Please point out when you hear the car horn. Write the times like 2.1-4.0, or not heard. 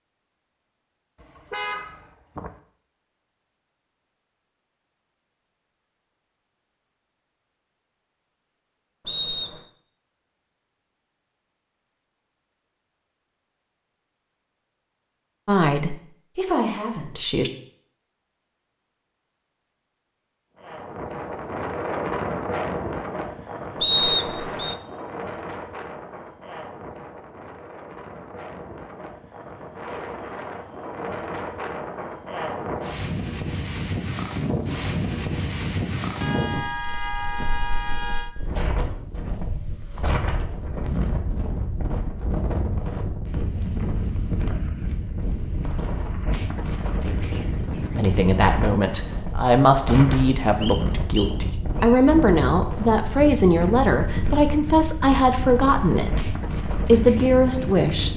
1.2-2.5, 36.2-38.4.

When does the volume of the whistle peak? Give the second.
24 s.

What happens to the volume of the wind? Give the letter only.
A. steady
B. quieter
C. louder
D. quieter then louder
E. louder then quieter
A.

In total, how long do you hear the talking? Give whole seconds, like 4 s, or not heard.
12 s.